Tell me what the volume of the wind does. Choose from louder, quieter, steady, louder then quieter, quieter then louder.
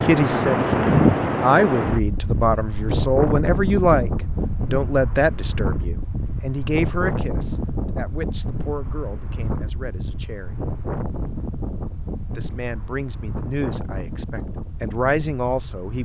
quieter.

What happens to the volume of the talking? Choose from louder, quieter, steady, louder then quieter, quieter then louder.
quieter then louder.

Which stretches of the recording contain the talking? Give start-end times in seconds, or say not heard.
0.0-4.1, 4.7-10.7, 12.3-16.0.